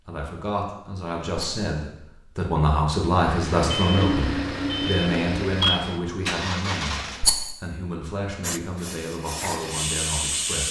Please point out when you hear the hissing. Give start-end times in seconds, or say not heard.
8.4-10.6.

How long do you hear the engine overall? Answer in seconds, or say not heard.
4 s.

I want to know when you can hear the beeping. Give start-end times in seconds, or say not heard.
3.6-5.8.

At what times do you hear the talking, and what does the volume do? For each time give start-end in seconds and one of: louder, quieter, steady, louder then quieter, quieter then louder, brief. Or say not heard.
0.1-10.6 louder then quieter.